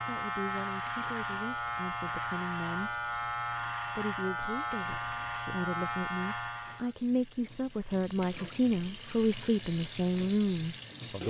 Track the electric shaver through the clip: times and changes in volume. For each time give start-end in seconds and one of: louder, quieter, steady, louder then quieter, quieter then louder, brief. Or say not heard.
0.0-7.0 steady.